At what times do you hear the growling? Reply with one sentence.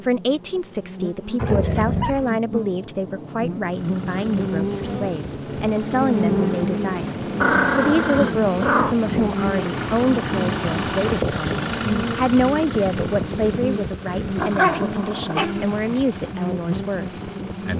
The growling can be heard from 1.4 to 2.3 s, from 7.4 to 8.9 s and from 14.3 to 16.1 s.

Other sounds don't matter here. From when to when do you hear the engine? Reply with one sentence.
The engine can be heard from 3.6 to 17.7 s.